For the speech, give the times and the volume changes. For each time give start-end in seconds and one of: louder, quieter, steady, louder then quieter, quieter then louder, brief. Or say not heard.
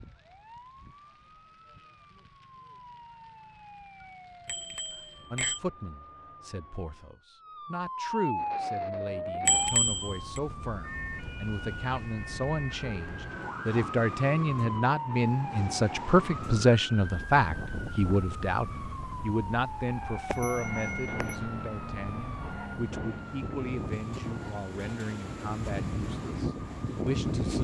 5.3-27.5 louder then quieter.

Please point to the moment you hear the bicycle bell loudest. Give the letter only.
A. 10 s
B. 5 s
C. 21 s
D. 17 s
A.